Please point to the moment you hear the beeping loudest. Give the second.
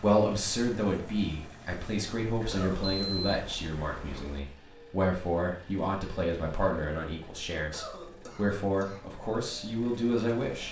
3 s.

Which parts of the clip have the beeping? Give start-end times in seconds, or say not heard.
2.4-4.4.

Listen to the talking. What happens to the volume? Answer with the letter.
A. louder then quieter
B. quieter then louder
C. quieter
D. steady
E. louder
D.